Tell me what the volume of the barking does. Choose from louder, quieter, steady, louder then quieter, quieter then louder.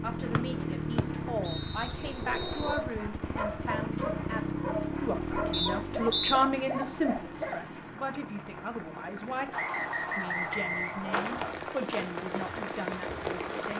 steady.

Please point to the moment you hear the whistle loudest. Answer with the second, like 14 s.
6 s.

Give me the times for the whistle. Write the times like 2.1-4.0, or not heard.
0.3-2.8, 5.5-6.4, 9.5-11.6.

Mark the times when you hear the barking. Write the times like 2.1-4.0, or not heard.
2.6-7.8.